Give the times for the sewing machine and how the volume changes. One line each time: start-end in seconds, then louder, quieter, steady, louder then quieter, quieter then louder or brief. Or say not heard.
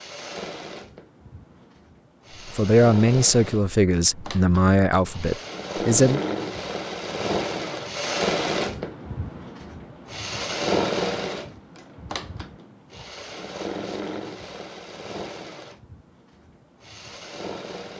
0.0-17.9 louder then quieter.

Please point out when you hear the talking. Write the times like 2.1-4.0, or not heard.
2.5-6.2.